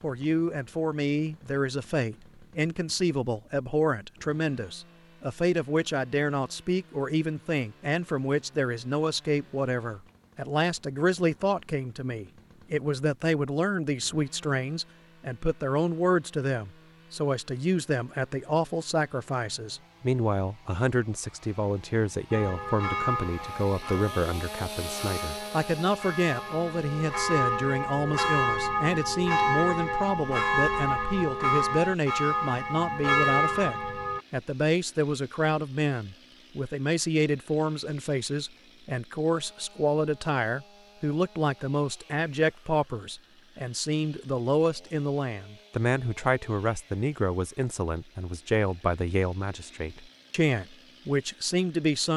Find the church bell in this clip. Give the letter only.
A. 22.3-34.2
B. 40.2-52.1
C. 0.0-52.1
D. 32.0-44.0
A.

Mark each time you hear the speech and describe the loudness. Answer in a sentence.
You can hear the speech from 0.0 to 52.1 s, at a steady volume.